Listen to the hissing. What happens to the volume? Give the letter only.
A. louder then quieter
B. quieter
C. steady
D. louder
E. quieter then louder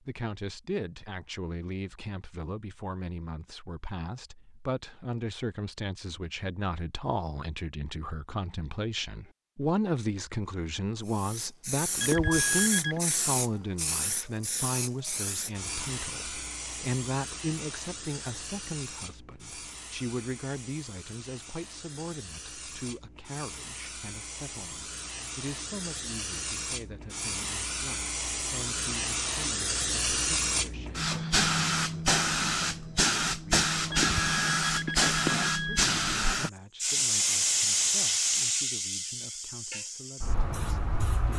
E.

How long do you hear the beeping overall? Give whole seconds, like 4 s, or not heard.
3 s.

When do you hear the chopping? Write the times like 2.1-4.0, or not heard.
not heard.